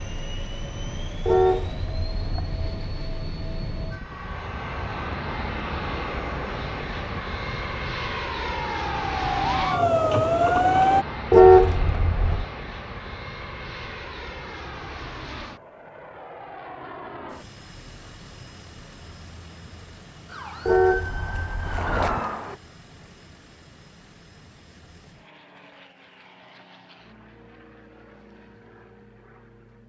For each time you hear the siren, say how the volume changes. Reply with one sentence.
The siren can be heard from 3.9 to 11.1 s, getting louder; and briefly from 20.2 to 22.6 s.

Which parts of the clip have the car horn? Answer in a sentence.
The car horn can be heard from 1.2 to 2.8 s, from 11.3 to 12.4 s and from 20.6 to 21.9 s.